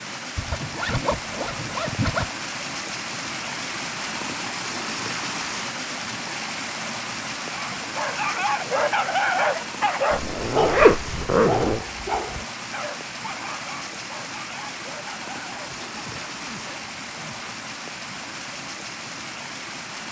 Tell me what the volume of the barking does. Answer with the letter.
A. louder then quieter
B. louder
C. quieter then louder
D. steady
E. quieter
E.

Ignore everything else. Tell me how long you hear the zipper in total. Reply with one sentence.
You can hear the zipper for 6 seconds altogether.